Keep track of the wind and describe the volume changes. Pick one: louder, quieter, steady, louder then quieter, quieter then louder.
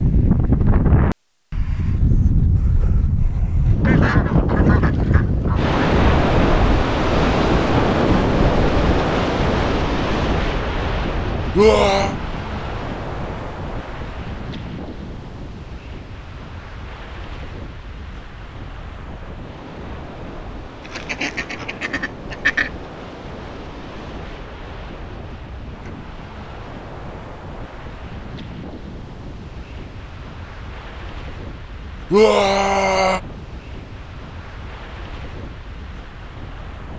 quieter.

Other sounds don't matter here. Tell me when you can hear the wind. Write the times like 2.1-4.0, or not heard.
0.0-36.9.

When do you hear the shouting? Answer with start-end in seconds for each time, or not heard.
11.5-12.2, 32.1-33.2.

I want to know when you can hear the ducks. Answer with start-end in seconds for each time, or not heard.
3.8-5.8, 20.9-22.7.